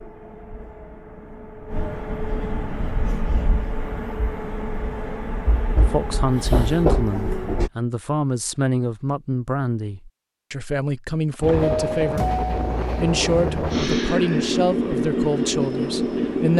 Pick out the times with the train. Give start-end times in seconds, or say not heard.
0.0-7.7, 11.4-16.5.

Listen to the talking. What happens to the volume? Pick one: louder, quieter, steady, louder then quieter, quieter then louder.
steady.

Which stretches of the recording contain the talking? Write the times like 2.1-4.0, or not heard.
5.8-16.5.